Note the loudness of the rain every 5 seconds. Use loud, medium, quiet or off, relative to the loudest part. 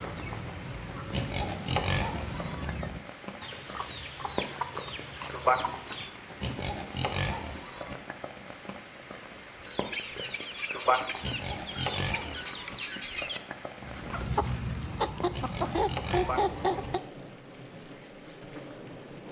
medium, loud, loud, medium.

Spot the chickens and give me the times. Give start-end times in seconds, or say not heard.
0.0-6.1, 9.6-17.0.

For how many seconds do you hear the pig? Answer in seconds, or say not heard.
6 s.